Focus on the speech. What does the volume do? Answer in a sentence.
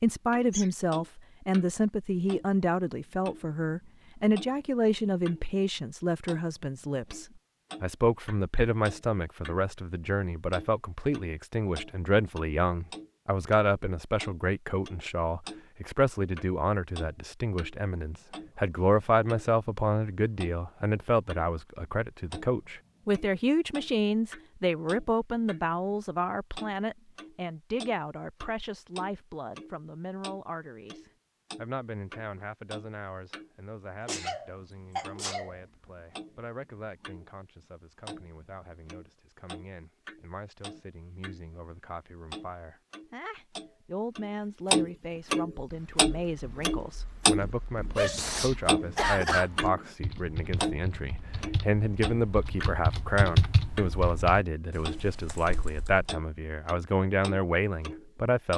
The volume of the speech goes down, then up.